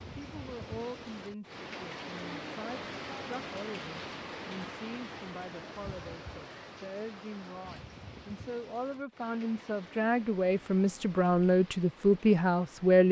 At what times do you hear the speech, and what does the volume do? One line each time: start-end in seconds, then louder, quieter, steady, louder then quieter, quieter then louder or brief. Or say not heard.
0.0-13.0 louder.